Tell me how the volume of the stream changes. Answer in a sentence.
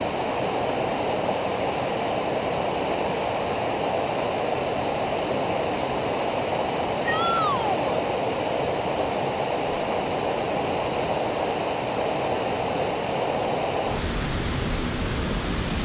The loudness of the stream stays about the same.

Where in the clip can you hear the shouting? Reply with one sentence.
The shouting can be heard from 7.0 to 8.0 s.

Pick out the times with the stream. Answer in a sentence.
You can hear the stream from 0.0 to 15.8 s.